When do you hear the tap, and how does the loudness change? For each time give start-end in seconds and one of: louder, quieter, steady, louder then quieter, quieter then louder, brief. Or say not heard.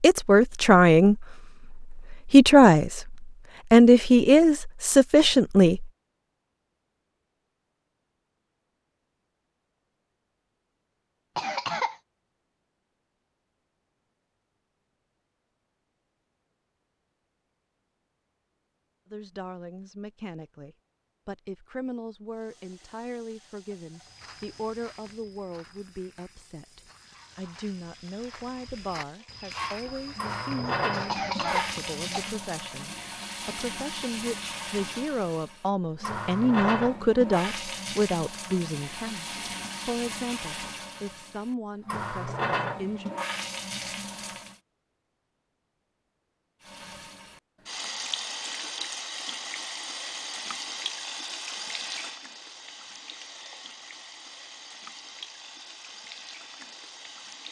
22.3-44.6 louder
46.6-57.4 quieter.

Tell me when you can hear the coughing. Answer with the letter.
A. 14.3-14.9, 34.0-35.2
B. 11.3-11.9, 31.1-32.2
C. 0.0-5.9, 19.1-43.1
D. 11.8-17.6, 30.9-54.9
B.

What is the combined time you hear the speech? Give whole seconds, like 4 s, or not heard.
30 s.